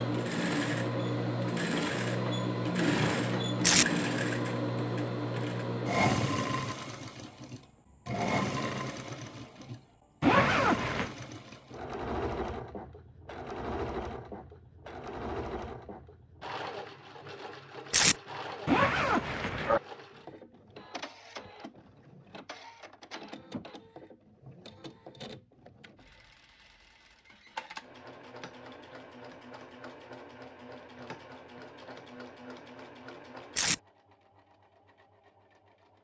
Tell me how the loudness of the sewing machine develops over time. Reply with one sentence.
The volume of the sewing machine goes down.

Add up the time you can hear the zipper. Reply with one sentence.
You can hear the zipper for 2 seconds altogether.